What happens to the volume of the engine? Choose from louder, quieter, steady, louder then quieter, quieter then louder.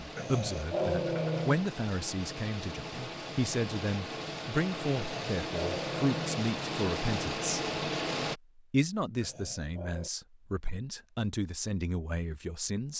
louder.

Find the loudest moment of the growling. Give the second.
1 s.